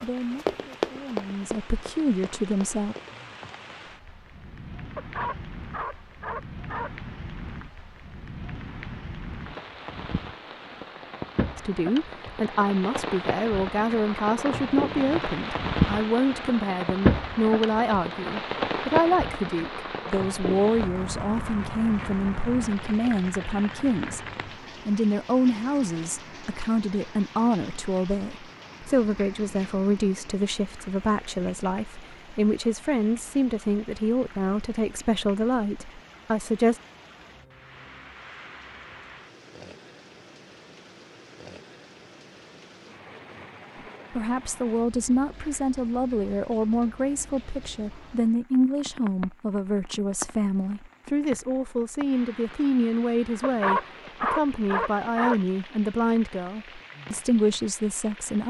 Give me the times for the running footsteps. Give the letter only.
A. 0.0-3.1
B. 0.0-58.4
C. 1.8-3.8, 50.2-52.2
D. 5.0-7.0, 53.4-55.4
A.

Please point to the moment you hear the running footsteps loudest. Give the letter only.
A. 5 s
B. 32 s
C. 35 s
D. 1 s
D.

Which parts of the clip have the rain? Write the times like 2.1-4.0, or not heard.
0.0-58.4.